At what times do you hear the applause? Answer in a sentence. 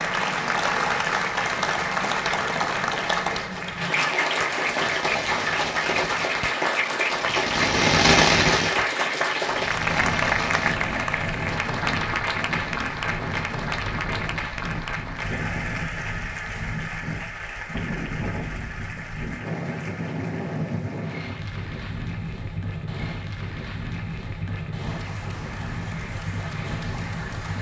The applause can be heard from 0.0 to 27.5 s.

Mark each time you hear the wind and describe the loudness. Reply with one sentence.
You can hear the wind from 9.5 to 27.5 s, at a steady volume.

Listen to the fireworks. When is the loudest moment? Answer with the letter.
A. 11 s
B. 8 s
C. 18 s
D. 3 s
B.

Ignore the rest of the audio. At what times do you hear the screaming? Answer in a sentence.
The screaming can't be heard in this clip.